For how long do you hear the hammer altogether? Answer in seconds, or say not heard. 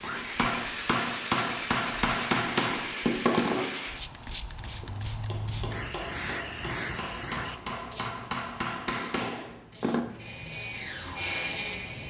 10 s.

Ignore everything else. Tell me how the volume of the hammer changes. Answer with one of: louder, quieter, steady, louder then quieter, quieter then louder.
quieter then louder.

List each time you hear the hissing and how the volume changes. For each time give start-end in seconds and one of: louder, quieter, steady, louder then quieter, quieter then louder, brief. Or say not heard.
0.0-12.0 quieter.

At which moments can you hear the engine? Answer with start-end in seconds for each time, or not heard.
10.2-12.0.